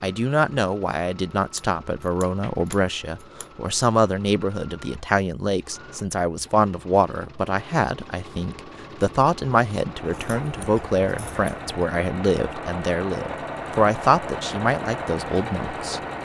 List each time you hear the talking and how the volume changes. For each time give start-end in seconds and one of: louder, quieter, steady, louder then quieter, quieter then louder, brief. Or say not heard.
0.0-16.0 steady.